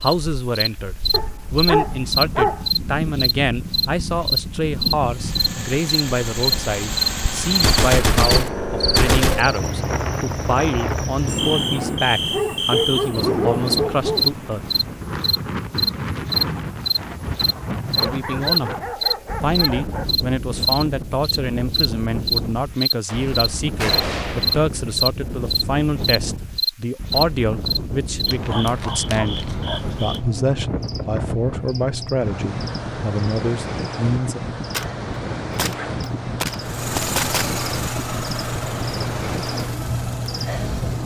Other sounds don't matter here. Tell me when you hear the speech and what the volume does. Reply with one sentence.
You can hear the speech from 0.0 to 14.6 s, at a steady volume; briefly from 18.0 to 18.8 s; and from 19.4 to 34.4 s, at a steady volume.